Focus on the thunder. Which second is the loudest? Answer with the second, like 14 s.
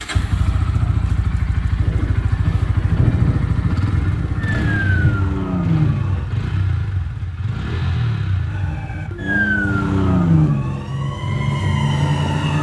3 s.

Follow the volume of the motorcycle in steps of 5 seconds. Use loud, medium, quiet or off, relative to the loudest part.
loud, loud, medium.